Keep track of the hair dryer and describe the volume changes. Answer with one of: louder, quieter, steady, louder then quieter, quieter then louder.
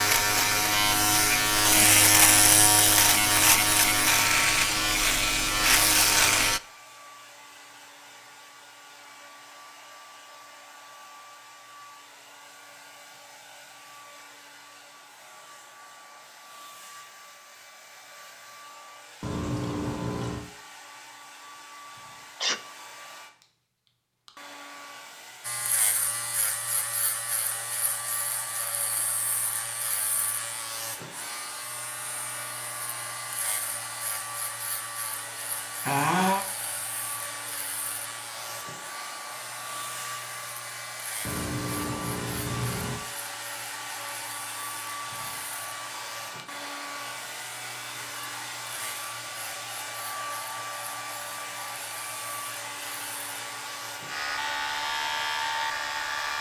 louder.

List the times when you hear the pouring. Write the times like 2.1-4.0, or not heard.
19.2-20.4, 41.2-43.0.